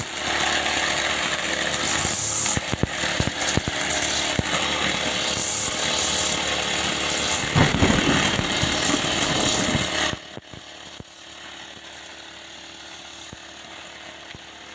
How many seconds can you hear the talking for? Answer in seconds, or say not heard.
not heard.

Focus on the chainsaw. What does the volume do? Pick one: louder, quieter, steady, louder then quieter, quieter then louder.
quieter.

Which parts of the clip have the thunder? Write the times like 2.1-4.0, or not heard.
7.3-9.8.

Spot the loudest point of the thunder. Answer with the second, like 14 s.
8 s.